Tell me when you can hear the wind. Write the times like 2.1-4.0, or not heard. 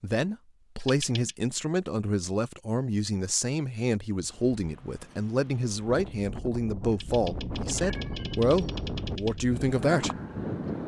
4.2-10.8.